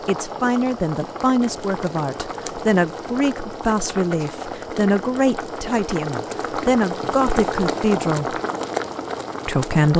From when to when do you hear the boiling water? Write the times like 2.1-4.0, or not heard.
0.0-9.9.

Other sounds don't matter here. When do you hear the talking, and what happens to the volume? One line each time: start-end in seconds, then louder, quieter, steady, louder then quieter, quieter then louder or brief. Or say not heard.
0.1-8.3 steady
9.4-9.9 brief.